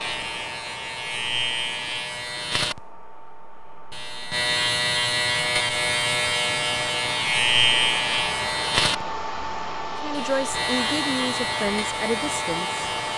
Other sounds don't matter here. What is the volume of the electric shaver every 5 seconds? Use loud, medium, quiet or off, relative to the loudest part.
medium, loud, medium.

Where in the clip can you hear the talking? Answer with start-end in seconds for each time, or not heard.
10.0-12.8.